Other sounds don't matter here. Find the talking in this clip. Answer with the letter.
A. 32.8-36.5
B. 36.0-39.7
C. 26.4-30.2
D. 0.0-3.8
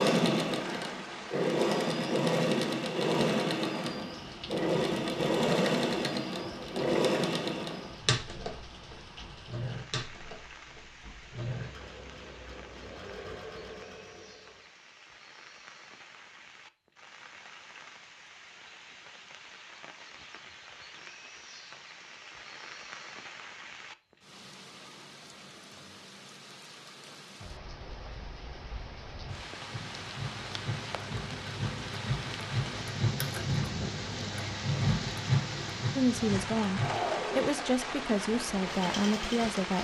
B.